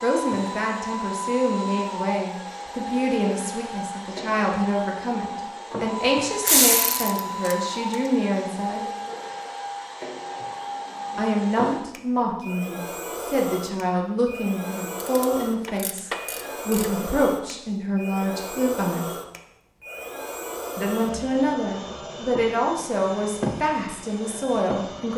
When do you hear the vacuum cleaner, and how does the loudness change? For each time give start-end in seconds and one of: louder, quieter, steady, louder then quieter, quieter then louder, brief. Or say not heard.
0.0-25.1 steady.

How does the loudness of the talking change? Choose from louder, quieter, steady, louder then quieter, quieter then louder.
steady.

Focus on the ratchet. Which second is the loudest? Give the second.
7 s.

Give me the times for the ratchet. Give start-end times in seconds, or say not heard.
6.4-8.0, 15.0-16.9.